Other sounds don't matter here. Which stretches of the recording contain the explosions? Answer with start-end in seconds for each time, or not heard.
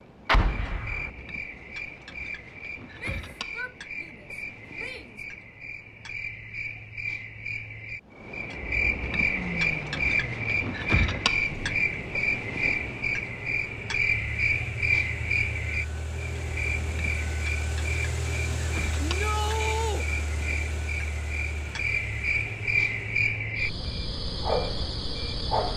0.2-1.1.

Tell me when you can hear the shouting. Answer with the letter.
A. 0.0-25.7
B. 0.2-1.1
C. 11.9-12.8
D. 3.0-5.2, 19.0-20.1
D.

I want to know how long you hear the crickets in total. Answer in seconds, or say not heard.
26 s.